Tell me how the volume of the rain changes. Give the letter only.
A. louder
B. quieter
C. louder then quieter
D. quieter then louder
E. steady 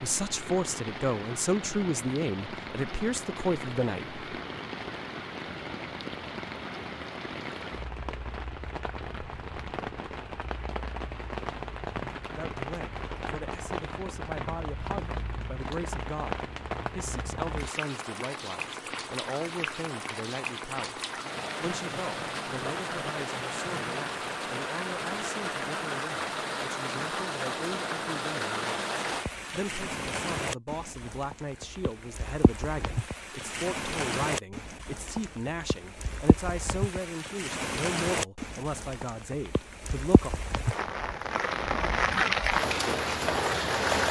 A.